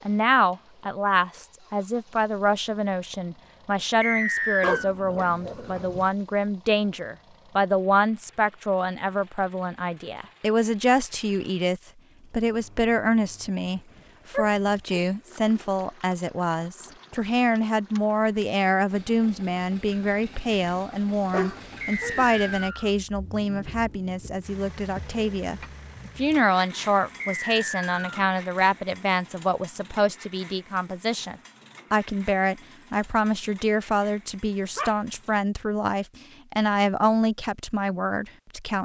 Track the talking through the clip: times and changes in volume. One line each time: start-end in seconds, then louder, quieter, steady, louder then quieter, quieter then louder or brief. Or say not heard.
0.1-38.8 steady.